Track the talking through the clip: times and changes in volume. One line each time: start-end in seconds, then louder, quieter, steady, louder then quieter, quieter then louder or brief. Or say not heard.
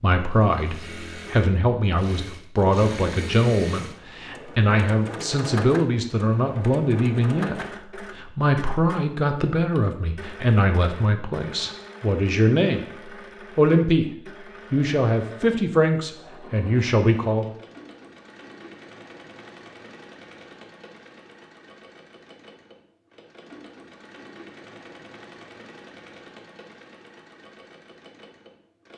0.0-12.8 steady
13.6-14.1 brief
14.7-17.5 brief.